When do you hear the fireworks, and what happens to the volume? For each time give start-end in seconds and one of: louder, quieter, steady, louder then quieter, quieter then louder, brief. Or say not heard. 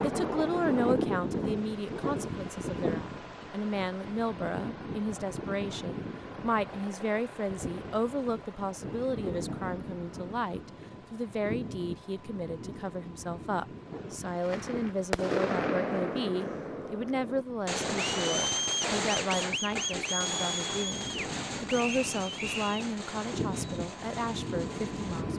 14.4-25.2 quieter.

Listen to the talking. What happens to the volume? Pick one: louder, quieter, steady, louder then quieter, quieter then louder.
steady.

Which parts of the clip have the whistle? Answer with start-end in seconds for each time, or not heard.
21.9-22.8.